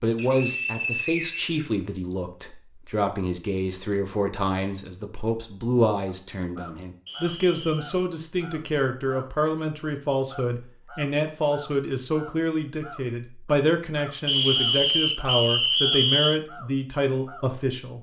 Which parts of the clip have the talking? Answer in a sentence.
The talking can be heard from 0.0 to 17.9 s.